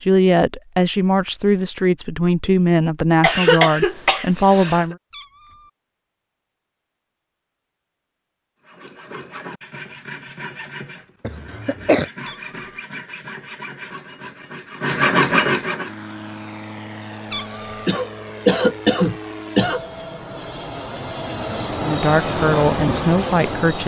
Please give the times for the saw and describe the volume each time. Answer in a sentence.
The saw can be heard from 8.7 to 15.9 s, getting louder.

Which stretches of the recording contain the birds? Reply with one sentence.
The birds can't be heard in this clip.